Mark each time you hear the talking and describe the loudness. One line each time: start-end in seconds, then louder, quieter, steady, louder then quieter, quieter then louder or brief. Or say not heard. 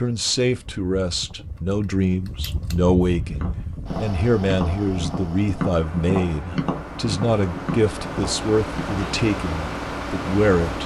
0.0-10.8 steady.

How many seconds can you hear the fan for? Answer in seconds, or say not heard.
11 s.